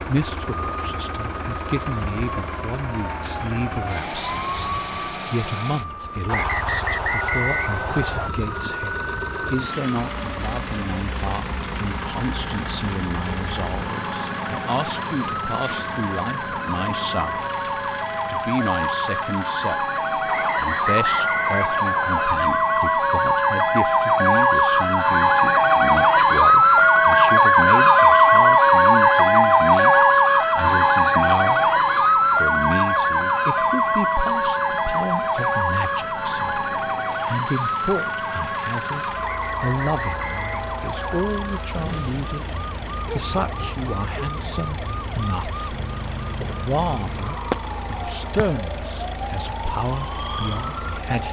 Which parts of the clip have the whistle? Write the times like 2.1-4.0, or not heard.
6.2-8.3, 20.2-22.3, 39.2-41.0.